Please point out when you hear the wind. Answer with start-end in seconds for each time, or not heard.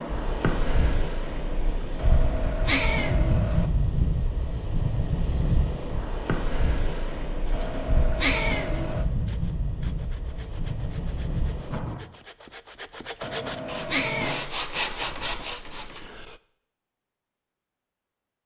0.0-12.0.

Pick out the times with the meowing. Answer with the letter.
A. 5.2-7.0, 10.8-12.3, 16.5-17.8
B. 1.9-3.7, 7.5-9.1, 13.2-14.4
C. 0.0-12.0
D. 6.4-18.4
B.